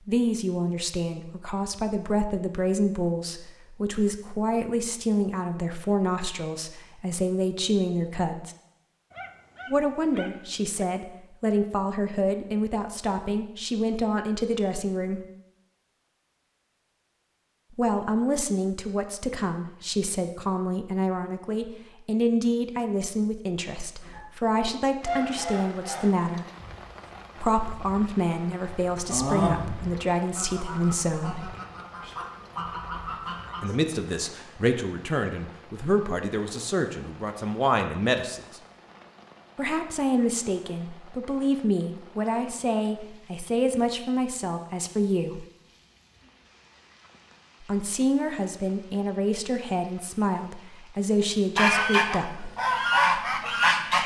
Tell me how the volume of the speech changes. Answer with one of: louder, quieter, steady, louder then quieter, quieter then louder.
steady.